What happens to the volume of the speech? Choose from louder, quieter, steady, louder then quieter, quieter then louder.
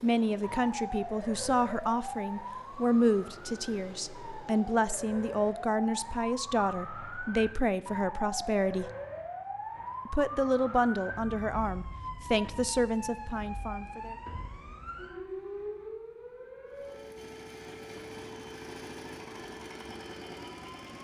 steady.